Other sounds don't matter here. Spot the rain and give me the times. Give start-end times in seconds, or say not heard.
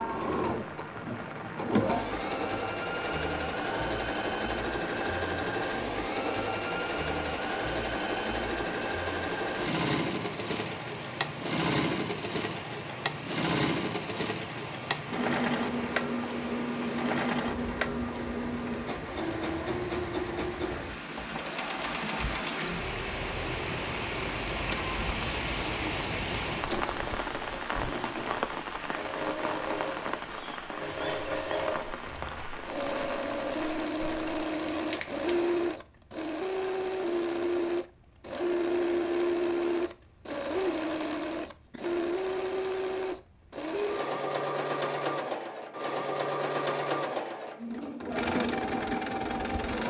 0.0-35.6.